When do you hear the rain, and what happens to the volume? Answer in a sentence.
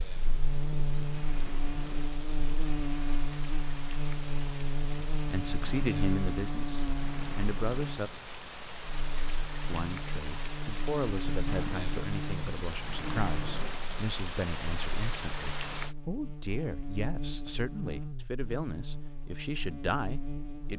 The rain can be heard from 0.0 to 15.9 s, getting louder.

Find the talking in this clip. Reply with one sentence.
You can hear the talking from 5.2 to 8.1 s and from 9.7 to 20.7 s.